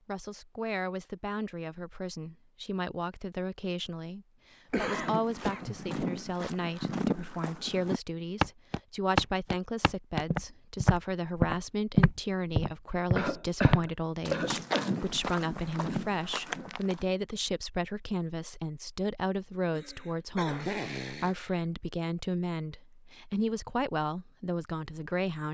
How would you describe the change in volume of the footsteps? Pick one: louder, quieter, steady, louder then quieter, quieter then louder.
louder then quieter.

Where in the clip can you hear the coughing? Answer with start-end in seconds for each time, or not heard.
4.7-5.8, 13.2-15.0, 19.7-21.6.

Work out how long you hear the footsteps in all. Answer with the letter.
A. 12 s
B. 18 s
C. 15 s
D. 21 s
A.